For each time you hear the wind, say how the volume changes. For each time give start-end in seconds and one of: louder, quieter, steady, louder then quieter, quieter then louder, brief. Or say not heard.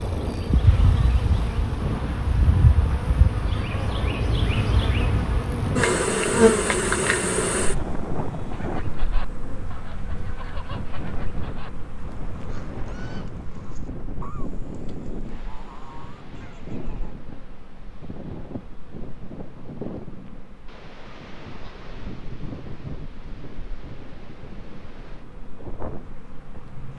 0.0-26.9 quieter.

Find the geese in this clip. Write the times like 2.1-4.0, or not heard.
8.5-17.1.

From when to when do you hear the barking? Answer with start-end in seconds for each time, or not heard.
not heard.